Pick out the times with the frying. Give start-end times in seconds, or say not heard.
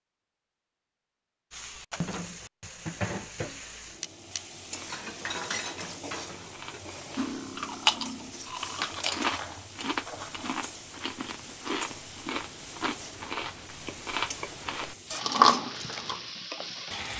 1.5-17.1.